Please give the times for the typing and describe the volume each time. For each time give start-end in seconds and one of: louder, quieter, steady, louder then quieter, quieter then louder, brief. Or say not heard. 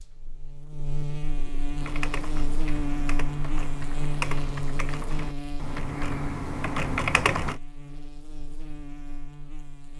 1.8-7.6 louder.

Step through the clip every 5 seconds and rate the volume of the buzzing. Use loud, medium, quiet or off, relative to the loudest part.
loud, medium.